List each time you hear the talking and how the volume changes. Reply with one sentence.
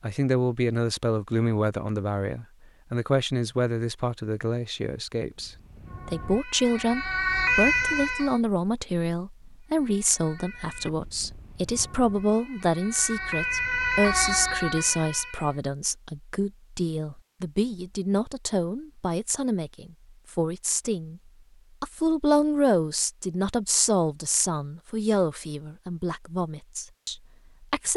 You can hear the talking from 0.0 to 21.2 s, at a steady volume; and from 21.8 to 27.9 s, getting quieter.